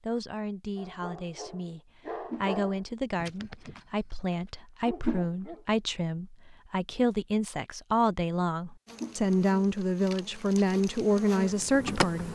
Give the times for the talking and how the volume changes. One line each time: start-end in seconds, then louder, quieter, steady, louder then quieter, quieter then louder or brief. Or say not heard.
0.0-12.3 louder.